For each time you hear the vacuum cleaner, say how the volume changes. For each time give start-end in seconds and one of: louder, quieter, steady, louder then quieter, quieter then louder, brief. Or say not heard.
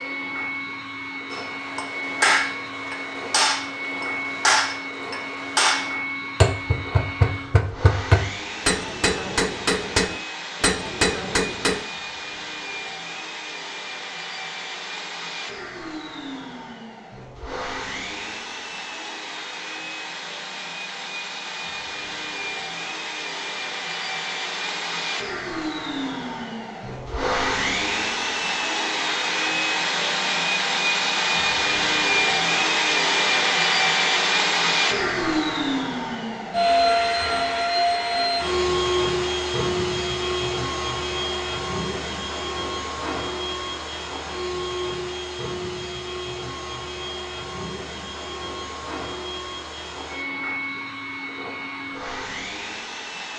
0.0-53.3 louder then quieter.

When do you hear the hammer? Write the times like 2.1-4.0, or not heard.
1.3-11.8.